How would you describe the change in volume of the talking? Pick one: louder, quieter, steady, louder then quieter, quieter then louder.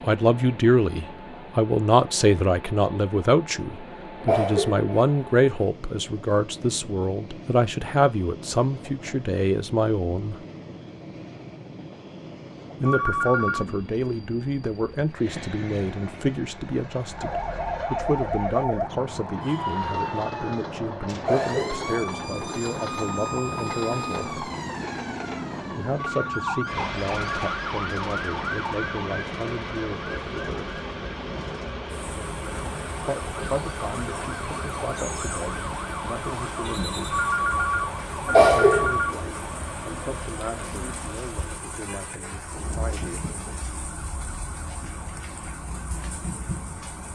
quieter.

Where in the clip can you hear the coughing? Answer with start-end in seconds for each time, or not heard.
4.2-5.1, 21.2-21.9, 38.2-38.9.